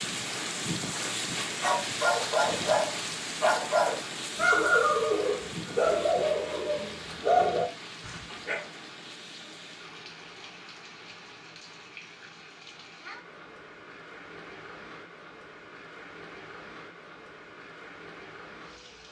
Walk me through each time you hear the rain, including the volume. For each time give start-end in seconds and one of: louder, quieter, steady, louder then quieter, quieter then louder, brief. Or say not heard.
0.0-19.0 quieter.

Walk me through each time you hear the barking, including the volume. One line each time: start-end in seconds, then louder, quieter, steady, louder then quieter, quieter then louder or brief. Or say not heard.
1.6-8.7 steady.